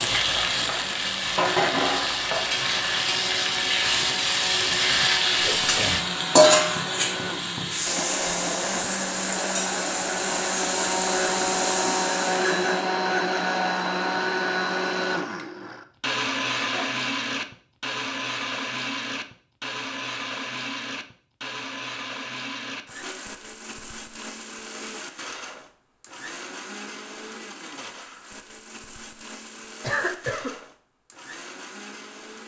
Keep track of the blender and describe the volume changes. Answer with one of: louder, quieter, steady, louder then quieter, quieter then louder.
louder then quieter.